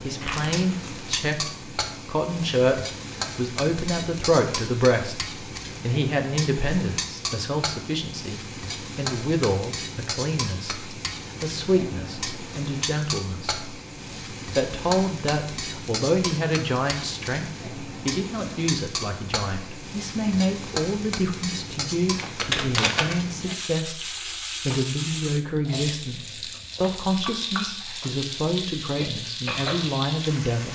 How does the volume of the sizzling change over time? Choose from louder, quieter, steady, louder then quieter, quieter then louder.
steady.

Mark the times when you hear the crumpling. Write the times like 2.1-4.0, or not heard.
0.2-0.9, 22.1-23.1.